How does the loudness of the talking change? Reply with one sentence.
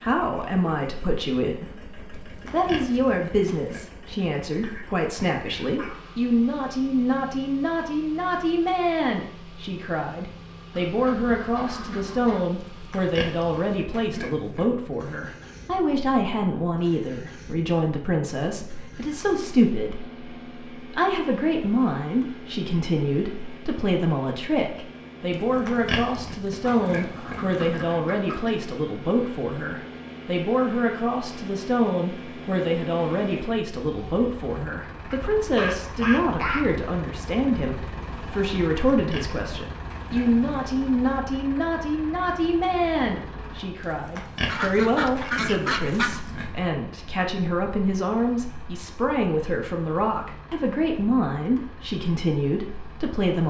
The loudness of the talking stays about the same.